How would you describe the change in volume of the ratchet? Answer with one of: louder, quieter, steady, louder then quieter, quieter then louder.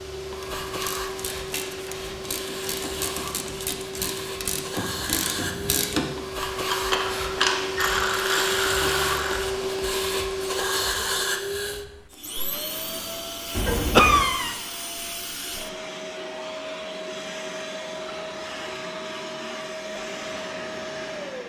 louder.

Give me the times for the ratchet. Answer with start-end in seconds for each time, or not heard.
0.3-9.4.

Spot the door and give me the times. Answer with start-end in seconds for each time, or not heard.
13.5-14.3.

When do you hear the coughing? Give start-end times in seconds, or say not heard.
13.9-14.6.